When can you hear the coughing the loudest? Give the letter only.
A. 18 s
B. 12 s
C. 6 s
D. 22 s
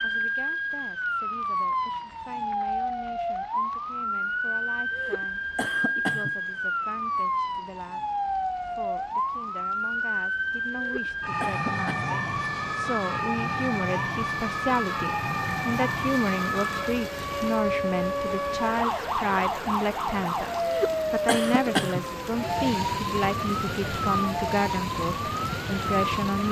D.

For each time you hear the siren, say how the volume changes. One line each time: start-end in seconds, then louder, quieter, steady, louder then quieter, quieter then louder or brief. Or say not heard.
0.0-26.4 steady.